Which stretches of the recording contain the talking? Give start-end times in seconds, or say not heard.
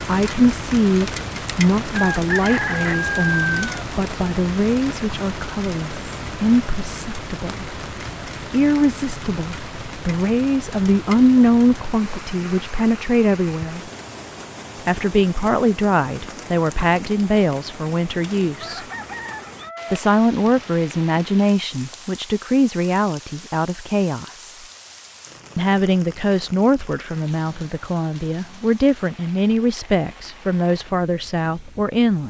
0.1-7.7, 8.5-13.9, 14.8-18.9, 19.9-24.4, 25.6-32.2.